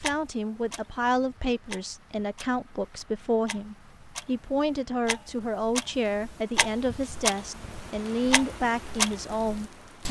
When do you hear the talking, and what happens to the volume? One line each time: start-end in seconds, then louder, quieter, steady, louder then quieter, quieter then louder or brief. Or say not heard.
0.0-10.0 steady.